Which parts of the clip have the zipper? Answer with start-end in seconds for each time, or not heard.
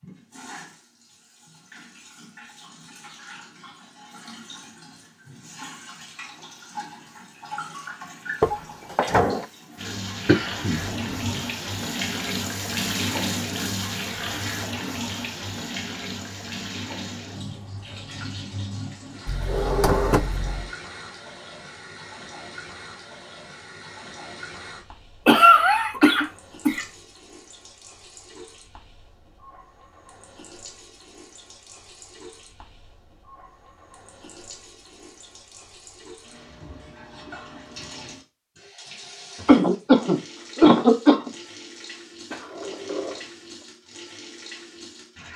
not heard.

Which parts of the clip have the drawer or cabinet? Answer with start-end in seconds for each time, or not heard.
8.4-9.4, 19.2-20.7, 42.3-43.6.